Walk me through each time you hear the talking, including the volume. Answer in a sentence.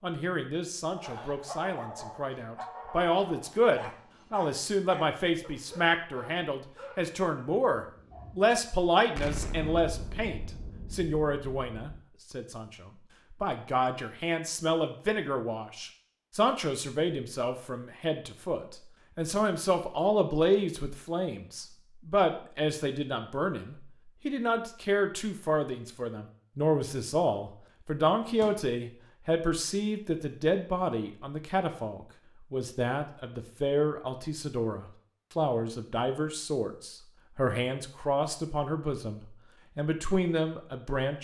You can hear the talking from 0.0 to 41.1 s, at a steady volume.